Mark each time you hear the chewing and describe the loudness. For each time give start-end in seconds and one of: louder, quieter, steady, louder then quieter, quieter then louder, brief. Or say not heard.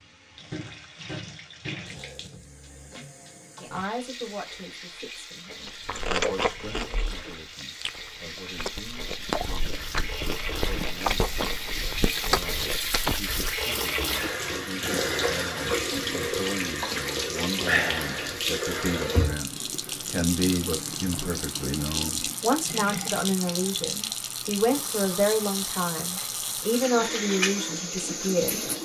5.7-13.6 quieter then louder.